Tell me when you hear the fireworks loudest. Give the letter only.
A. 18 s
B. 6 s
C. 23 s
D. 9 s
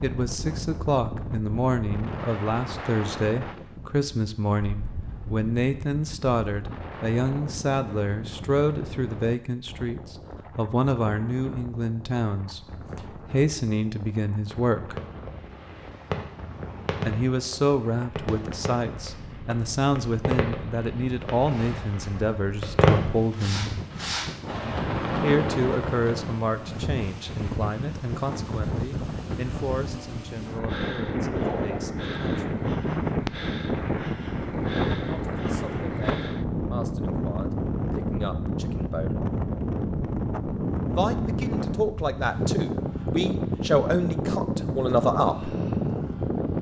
C.